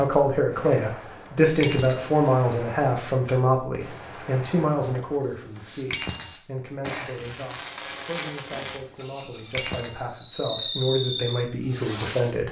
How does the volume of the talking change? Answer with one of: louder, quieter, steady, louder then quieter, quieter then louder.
quieter then louder.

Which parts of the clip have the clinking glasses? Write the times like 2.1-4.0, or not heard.
0.6-2.0, 4.8-6.3, 8.5-10.0.